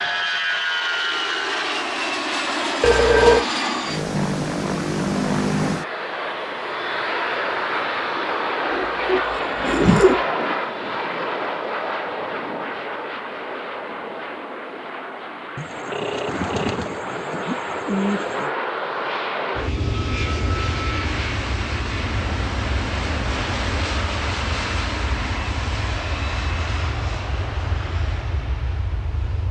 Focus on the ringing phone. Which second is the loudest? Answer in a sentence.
The loudest moment of the ringing phone is at 3 seconds.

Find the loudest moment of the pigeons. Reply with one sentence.
The loudest moment of the pigeons is at 10 seconds.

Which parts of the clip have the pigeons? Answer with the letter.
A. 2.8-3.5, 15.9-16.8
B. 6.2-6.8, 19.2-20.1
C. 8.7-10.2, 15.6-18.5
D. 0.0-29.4
C.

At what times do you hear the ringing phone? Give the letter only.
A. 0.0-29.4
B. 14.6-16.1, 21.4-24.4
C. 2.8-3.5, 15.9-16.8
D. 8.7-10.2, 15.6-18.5
C.